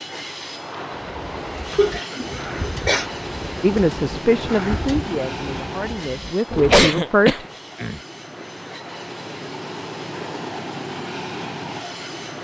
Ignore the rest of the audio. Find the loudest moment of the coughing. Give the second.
7 s.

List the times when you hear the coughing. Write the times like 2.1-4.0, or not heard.
1.7-3.0, 6.5-8.0.